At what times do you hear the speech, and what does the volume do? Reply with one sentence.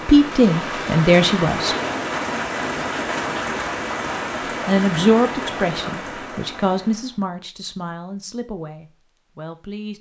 You can hear the speech briefly from 0.1 to 1.8 s; and from 4.7 to 9.9 s, getting quieter.